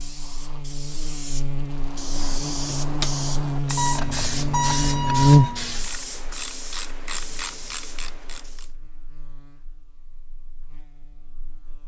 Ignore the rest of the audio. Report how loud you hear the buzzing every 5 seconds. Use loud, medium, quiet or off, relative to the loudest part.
medium, loud, quiet.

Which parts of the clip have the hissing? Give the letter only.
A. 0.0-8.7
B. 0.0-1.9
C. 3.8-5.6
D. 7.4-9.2
A.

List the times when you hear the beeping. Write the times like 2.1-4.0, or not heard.
3.8-5.6.